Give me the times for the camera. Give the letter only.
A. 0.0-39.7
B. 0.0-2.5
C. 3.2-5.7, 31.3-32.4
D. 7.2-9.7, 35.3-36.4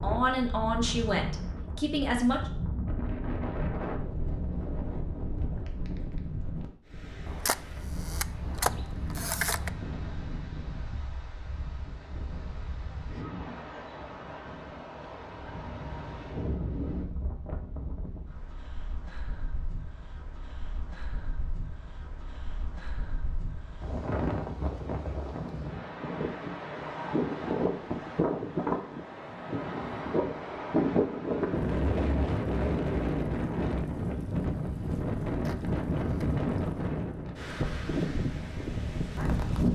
D.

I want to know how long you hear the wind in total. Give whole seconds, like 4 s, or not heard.
40 s.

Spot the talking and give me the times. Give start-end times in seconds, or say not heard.
0.0-2.5.